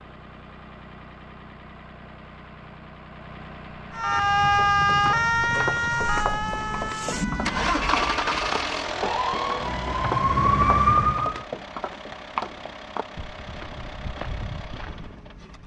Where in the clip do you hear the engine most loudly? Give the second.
8 s.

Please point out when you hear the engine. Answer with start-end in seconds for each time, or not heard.
0.0-15.6.